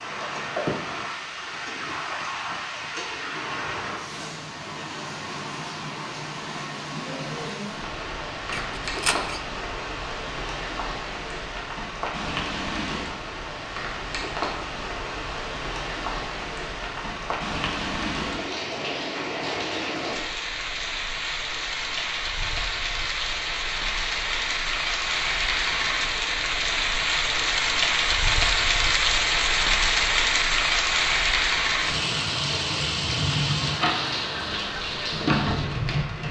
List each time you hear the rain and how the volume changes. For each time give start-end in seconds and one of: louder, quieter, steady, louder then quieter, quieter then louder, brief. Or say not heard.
0.0-36.2 louder.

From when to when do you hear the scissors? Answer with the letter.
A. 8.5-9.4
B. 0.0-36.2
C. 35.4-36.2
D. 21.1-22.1
A.